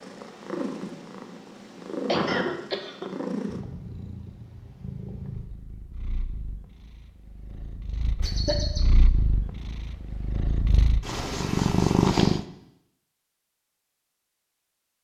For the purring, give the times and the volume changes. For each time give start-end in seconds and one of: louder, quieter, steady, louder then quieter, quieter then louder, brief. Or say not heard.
0.0-12.4 quieter then louder.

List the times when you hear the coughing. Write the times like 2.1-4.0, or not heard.
2.0-3.0, 8.2-8.9.